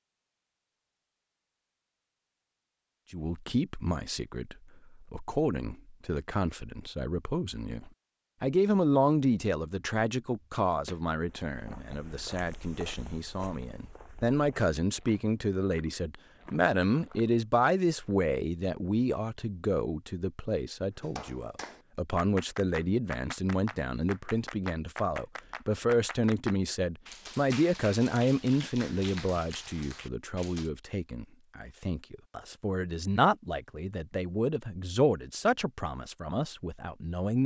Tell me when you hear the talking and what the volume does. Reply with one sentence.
The talking can be heard from 3.1 to 37.4 s, at a steady volume.